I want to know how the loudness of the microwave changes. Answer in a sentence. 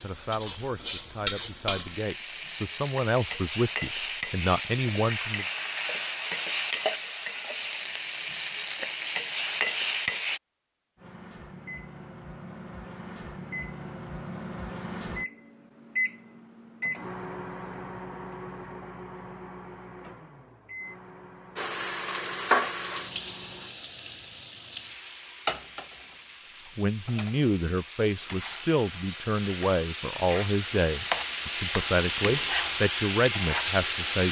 The loudness of the microwave goes up, then down.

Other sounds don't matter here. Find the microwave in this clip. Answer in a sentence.
You can hear the microwave from 10.9 to 23.8 s.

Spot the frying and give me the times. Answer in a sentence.
The frying can be heard from 0.0 to 10.4 s and from 21.6 to 34.2 s.